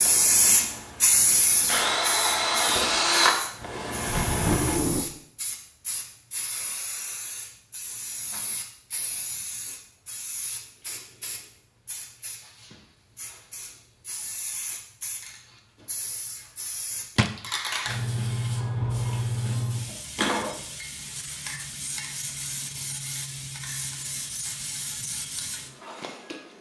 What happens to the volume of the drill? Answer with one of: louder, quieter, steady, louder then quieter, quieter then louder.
louder then quieter.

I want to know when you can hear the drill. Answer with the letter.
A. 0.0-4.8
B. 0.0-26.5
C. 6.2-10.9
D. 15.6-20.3
A.